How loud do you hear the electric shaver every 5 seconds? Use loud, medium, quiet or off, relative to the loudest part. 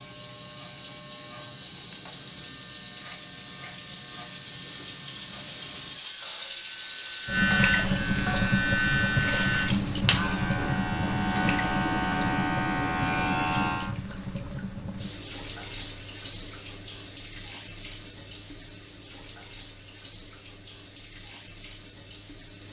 quiet, loud, loud, off, off.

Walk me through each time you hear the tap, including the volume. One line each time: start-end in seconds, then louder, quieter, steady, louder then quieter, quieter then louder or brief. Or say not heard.
0.0-22.6 louder then quieter.